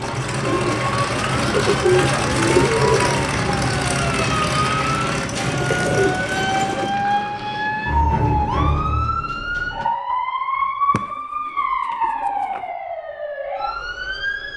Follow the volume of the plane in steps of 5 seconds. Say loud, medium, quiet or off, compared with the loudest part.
loud, medium, off.